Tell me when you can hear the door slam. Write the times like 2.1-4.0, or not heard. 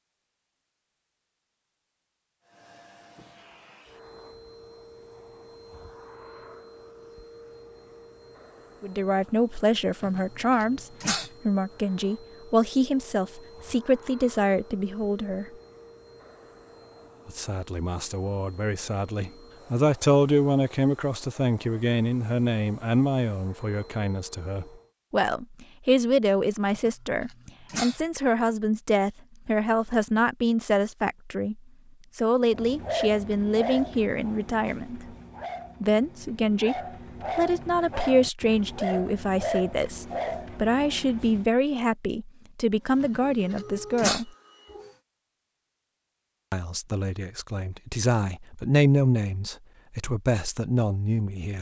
not heard.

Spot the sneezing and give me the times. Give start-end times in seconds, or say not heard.
10.0-11.3, 26.7-28.0, 43.0-44.2.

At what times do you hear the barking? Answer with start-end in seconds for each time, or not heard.
32.5-41.5.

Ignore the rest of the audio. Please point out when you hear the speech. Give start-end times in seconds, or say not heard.
8.8-15.5, 17.2-35.1, 35.8-44.3, 46.5-51.5.